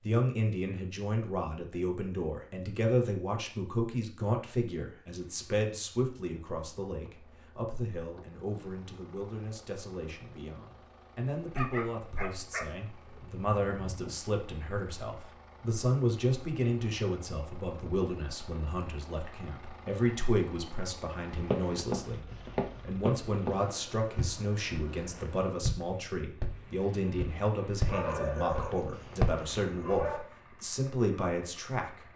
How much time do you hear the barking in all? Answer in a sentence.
You can hear the barking for 5 seconds altogether.